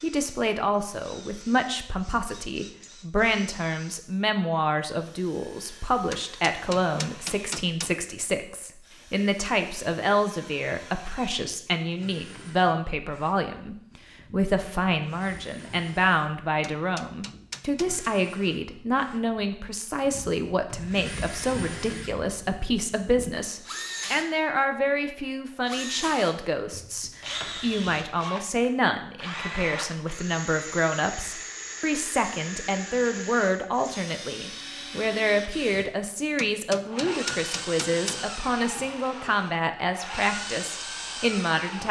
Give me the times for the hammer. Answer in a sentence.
You can hear the hammer from 6.1 to 8.0 s, from 16.6 to 18.1 s and from 36.4 to 38.3 s.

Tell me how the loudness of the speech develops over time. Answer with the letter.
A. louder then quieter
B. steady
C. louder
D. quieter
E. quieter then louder
B.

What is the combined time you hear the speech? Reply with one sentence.
You can hear the speech for 42 seconds altogether.